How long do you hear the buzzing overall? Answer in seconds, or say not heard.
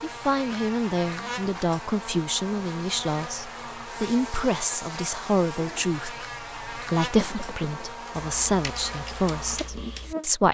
10 s.